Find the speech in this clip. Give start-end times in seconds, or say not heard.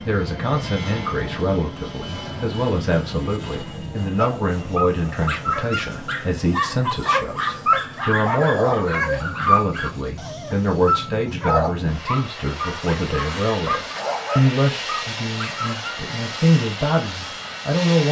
0.0-18.0.